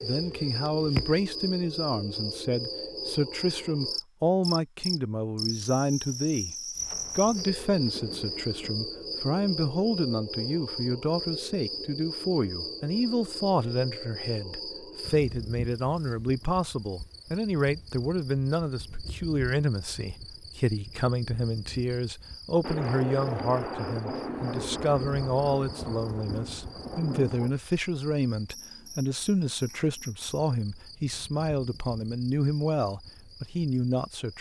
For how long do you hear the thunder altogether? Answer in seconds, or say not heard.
7 s.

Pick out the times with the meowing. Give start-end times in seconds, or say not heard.
0.2-1.2.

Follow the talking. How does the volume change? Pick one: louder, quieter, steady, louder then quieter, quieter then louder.
steady.